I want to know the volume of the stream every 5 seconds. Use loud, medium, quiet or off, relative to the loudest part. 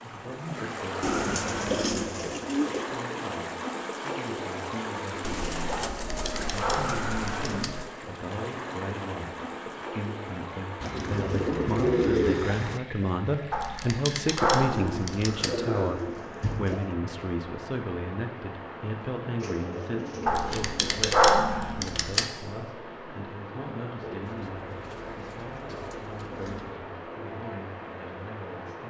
loud, loud, medium, medium, medium, medium.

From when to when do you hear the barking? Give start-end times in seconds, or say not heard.
5.7-7.7, 13.5-15.5, 20.2-22.2.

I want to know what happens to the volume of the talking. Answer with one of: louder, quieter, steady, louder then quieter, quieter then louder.
louder then quieter.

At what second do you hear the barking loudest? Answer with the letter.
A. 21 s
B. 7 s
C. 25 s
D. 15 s
A.